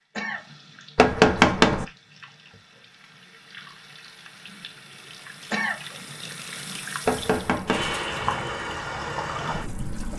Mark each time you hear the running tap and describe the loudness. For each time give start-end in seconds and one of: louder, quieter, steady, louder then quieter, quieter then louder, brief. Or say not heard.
0.0-10.1 louder.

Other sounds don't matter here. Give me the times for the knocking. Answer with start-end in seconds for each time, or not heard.
0.9-1.9, 7.0-8.0.